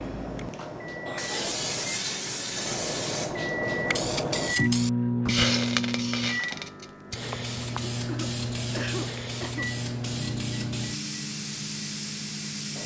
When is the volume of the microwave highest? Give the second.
5 s.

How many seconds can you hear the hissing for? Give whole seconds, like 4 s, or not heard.
13 s.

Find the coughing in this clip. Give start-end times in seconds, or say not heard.
1.1-1.6, 7.9-9.7.